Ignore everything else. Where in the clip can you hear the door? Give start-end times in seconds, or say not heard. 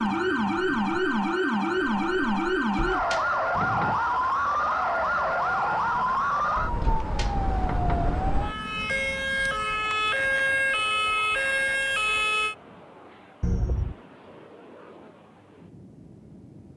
2.5-4.0, 6.6-8.2, 13.4-13.9.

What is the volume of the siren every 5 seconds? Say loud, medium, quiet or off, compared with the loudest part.
loud, loud, loud, off.